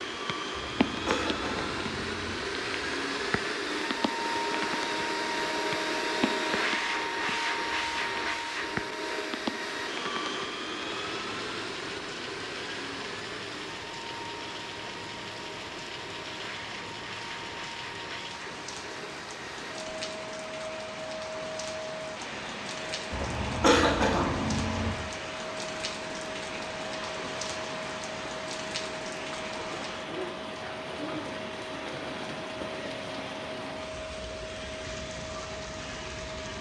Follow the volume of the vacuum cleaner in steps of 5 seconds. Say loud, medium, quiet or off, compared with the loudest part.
loud, loud, medium, medium, medium, medium, medium, medium.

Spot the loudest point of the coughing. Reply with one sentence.
The loudest moment of the coughing is at 24 seconds.